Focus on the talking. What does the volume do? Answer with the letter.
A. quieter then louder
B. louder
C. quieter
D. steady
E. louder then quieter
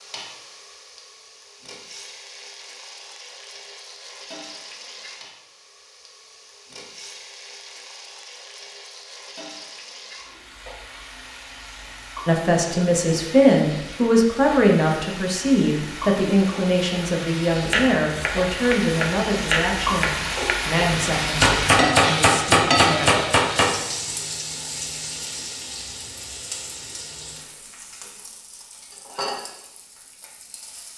C.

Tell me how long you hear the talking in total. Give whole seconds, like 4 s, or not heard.
11 s.